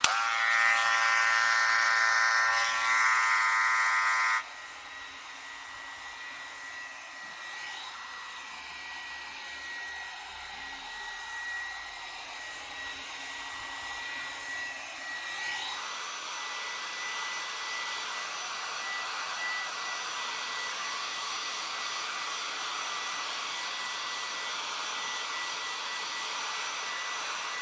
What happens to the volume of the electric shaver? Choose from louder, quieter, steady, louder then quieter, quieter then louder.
quieter.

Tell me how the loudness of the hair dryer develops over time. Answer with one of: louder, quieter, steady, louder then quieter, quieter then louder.
louder.